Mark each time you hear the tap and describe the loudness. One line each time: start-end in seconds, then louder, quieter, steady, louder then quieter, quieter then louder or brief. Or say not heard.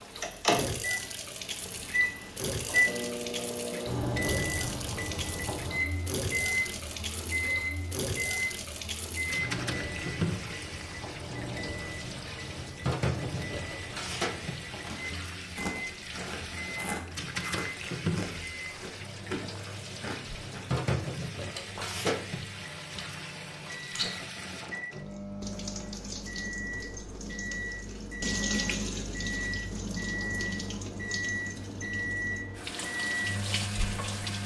0.0-34.4 steady.